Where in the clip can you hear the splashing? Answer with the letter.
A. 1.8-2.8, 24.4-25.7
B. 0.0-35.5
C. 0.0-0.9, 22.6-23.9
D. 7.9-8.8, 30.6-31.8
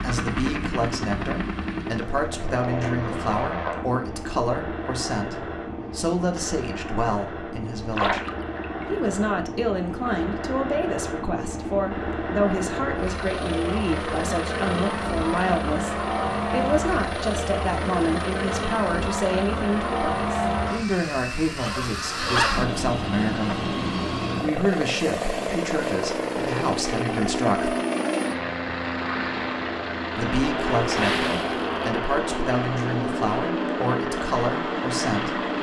D.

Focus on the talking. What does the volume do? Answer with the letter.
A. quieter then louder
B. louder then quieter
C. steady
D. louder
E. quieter
C.